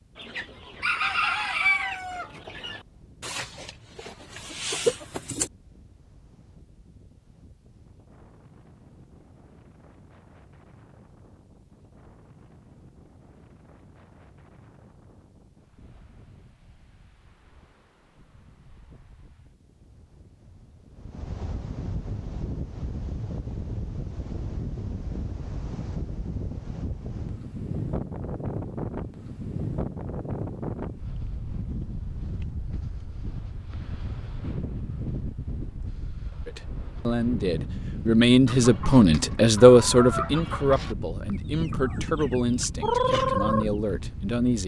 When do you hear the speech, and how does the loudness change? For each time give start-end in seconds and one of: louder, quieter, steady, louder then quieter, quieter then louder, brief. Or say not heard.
36.5-44.6 louder then quieter.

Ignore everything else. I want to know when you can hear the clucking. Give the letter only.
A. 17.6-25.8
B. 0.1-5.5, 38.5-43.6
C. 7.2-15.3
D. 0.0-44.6
B.